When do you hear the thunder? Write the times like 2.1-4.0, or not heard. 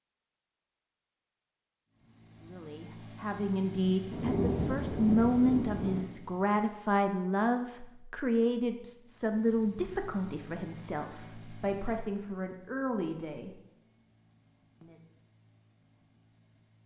4.1-6.0.